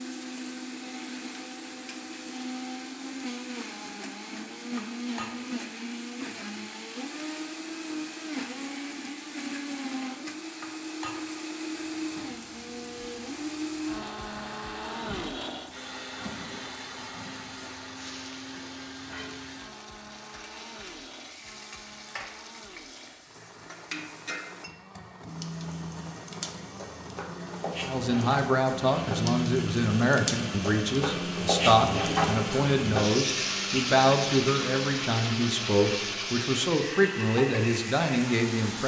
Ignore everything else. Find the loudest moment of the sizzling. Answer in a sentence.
The loudest moment of the sizzling is at 32 seconds.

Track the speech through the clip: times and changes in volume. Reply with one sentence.
You can hear the speech from 27.8 to 38.8 s, at a steady volume.